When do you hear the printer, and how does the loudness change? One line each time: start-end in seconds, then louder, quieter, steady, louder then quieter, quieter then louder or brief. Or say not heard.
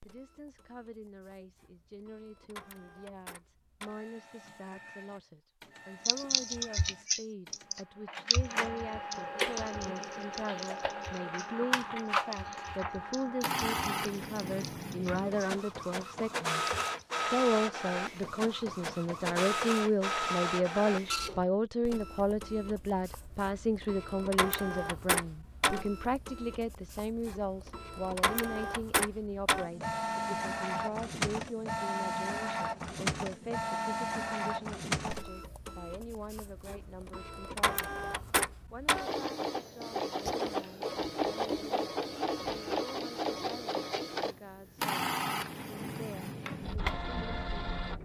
0.0-48.0 louder.